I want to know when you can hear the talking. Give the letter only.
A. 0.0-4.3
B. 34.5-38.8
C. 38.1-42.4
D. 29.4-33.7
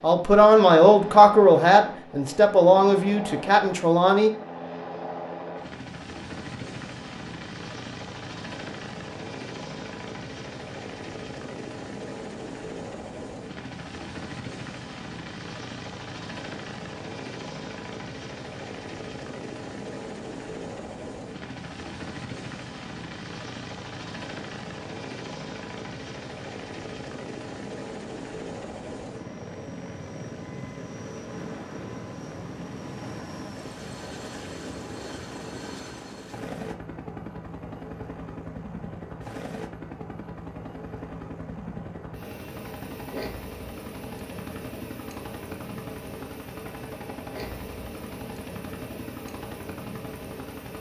A.